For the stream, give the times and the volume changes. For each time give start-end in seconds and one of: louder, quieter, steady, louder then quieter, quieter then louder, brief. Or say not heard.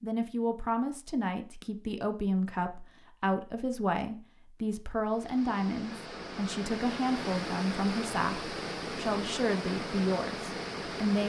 5.0-11.2 louder.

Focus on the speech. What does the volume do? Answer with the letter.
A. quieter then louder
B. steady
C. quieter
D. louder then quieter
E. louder
B.